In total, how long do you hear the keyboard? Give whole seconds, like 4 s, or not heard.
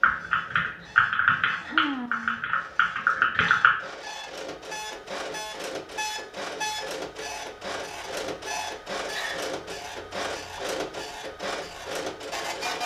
4 s.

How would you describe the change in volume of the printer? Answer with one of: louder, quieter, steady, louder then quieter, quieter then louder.
louder.